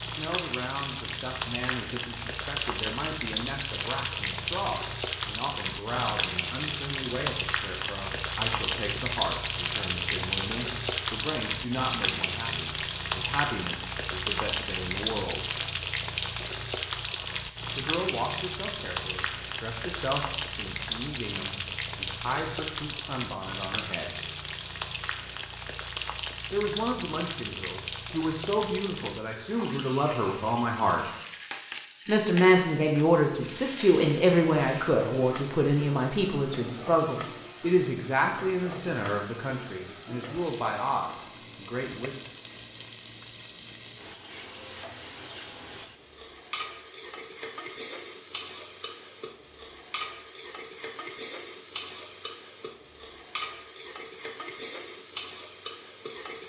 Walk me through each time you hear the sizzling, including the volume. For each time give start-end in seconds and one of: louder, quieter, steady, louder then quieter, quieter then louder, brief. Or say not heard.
0.0-56.4 quieter.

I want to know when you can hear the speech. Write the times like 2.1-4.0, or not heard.
0.1-15.6, 17.8-24.1, 26.5-31.1, 32.0-42.2.